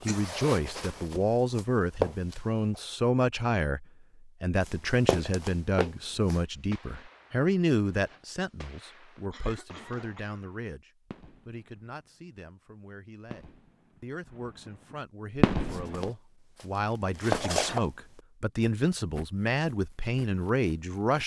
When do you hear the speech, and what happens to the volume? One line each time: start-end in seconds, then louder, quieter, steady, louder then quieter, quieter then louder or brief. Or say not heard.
0.1-21.2 quieter then louder.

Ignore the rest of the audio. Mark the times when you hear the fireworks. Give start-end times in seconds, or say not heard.
6.2-12.0, 13.2-14.2, 15.3-16.1.